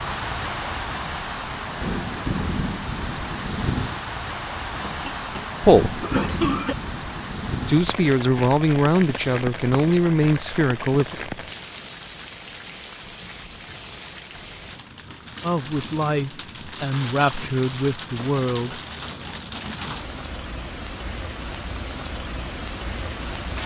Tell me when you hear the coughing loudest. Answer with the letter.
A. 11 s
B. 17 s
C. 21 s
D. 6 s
D.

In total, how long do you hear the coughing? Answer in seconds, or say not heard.
2 s.